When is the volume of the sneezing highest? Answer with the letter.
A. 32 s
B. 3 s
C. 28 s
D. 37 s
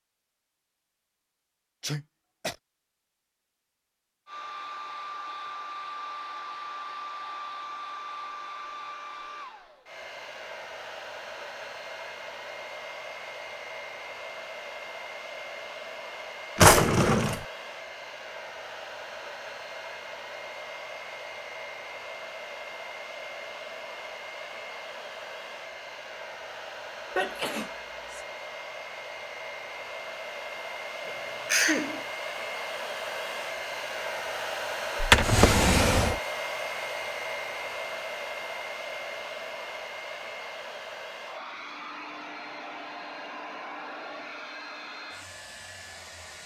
A.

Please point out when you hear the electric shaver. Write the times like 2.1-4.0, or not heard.
not heard.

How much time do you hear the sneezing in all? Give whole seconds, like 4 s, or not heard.
3 s.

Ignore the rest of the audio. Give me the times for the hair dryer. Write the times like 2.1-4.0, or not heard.
4.2-46.4.